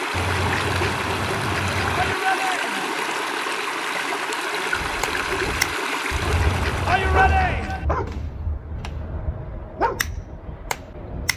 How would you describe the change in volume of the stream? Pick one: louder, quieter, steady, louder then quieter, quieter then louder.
steady.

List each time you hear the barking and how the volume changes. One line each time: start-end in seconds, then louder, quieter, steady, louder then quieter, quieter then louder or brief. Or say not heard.
4.7-11.3 quieter then louder.